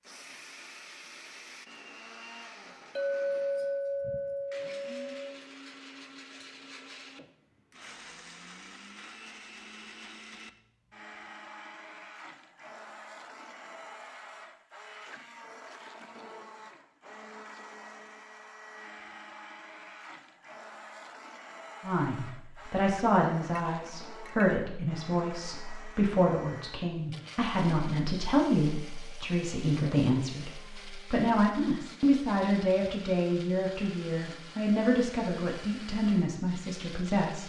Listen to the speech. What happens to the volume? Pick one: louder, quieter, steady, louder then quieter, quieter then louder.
steady.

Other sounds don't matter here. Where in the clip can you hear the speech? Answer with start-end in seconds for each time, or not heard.
21.8-37.4.